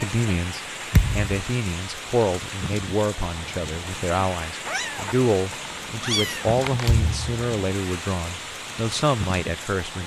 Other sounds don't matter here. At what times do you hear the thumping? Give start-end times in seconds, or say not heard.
0.9-1.4, 6.8-7.4.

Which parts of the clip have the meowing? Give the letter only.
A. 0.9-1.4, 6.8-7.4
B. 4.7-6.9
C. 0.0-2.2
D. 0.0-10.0
B.